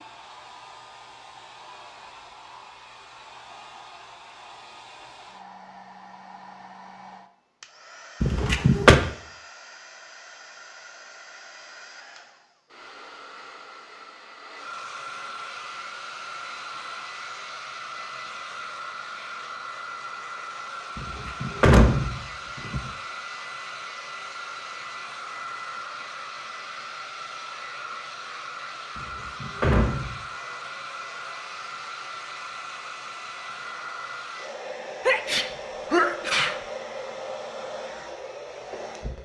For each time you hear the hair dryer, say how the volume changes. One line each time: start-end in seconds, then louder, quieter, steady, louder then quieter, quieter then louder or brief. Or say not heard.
0.0-39.2 louder.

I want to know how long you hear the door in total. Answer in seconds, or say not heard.
4 s.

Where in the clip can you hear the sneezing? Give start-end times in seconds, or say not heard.
35.0-36.6.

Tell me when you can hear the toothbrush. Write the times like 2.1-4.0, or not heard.
not heard.